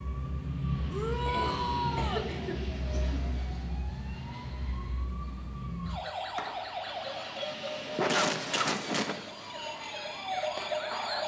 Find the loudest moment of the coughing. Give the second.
8 s.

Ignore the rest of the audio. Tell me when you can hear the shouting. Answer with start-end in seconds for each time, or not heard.
0.9-2.3.